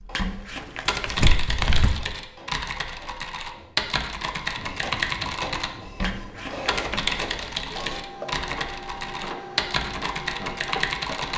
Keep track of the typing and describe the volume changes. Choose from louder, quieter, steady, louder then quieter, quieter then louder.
steady.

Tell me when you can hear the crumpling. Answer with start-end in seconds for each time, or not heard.
0.1-1.9, 6.0-7.1.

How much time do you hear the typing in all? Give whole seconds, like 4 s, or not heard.
11 s.